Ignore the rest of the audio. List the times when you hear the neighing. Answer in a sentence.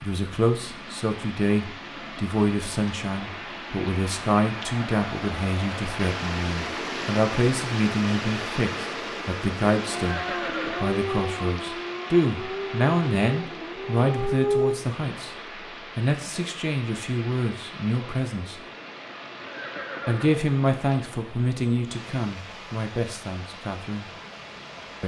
You can hear the neighing from 9.9 to 10.9 s and from 19.4 to 20.4 s.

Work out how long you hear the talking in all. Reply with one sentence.
You can hear the talking for 22 seconds altogether.